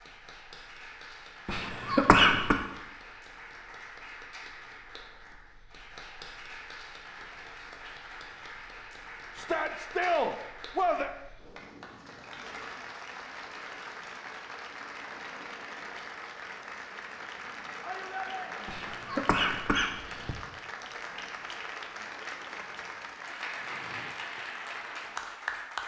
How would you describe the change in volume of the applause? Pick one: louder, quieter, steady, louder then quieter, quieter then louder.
louder.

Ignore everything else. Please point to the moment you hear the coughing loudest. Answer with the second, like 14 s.
2 s.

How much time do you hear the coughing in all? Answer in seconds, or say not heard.
3 s.